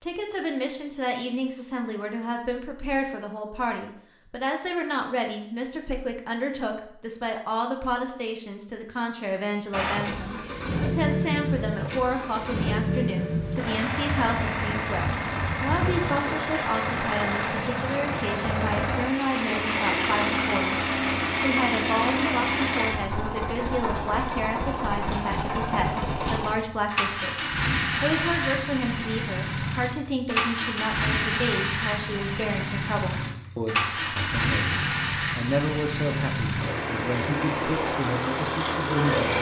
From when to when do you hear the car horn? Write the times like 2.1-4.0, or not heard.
not heard.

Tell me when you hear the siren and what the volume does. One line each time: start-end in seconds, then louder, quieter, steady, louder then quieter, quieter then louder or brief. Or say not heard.
not heard.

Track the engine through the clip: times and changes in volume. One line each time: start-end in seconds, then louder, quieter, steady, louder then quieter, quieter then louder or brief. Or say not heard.
9.7-39.3 steady.